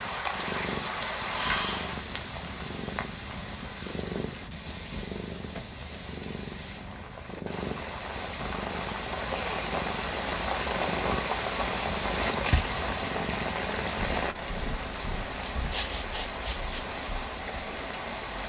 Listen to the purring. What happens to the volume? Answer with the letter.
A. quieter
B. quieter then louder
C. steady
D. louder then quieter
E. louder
C.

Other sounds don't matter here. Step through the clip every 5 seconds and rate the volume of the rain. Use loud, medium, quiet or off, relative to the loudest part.
medium, medium, loud, medium.